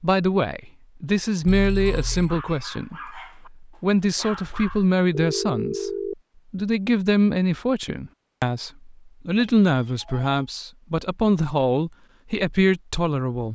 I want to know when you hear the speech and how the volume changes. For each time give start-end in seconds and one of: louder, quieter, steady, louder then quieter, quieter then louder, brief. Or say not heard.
0.0-13.5 steady.